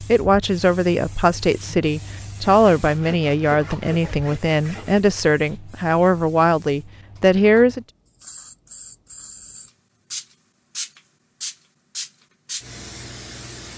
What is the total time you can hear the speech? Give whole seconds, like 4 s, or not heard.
8 s.